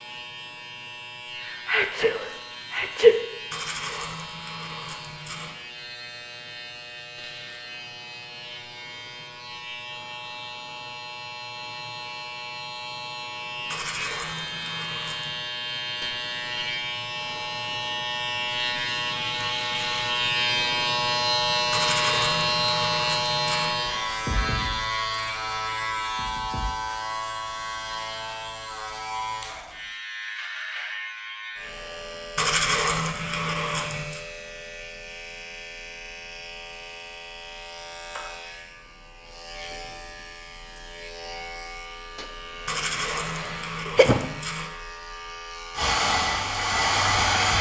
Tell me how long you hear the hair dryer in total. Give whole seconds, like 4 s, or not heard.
2 s.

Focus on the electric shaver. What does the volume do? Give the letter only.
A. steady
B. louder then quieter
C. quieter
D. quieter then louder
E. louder
B.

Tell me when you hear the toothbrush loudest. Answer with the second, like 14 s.
33 s.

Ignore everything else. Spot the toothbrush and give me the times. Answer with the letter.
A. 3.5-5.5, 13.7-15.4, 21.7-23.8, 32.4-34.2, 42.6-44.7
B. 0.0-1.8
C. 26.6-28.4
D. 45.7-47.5
A.